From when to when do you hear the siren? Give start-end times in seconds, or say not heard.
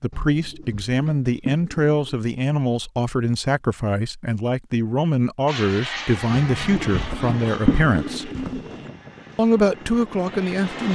not heard.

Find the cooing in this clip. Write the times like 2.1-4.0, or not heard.
0.1-2.1, 6.3-8.8.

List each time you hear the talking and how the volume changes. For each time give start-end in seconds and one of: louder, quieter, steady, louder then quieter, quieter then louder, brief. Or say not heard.
0.0-8.3 steady
9.3-10.8 brief.